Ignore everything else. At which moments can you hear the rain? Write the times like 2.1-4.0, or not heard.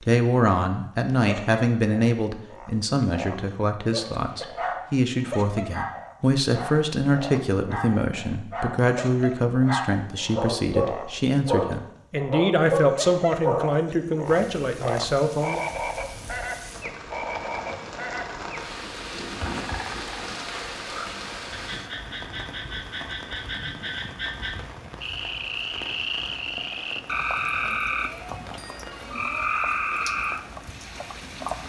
14.2-31.6.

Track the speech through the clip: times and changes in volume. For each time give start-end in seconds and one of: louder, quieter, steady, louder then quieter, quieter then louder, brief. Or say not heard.
0.1-15.6 steady.